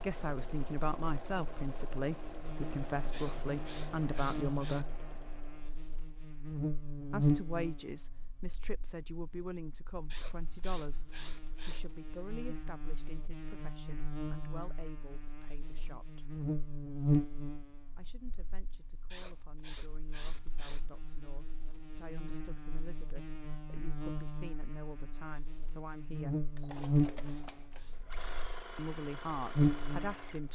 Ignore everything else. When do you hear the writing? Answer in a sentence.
You can hear the writing from 3.1 to 4.8 s, from 10.1 to 11.8 s, from 19.1 to 20.9 s and from 26.7 to 28.4 s.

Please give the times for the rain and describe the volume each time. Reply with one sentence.
The rain can't be heard in this clip.